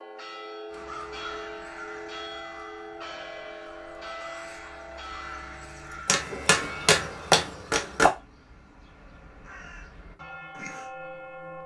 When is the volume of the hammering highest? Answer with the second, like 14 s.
7 s.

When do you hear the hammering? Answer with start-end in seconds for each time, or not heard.
6.0-8.1.